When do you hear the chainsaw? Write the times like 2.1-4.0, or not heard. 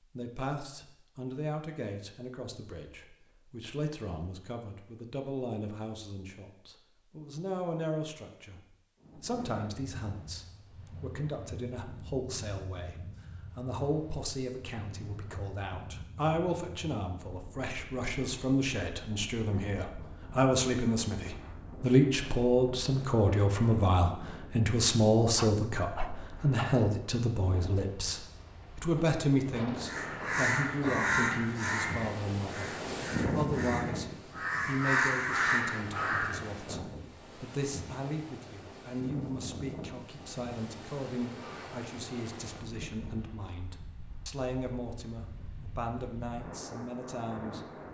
not heard.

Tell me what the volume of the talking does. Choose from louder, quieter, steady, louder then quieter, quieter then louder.
louder then quieter.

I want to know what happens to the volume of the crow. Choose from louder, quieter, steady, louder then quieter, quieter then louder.
quieter then louder.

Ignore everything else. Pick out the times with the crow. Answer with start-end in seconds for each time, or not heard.
29.9-36.6.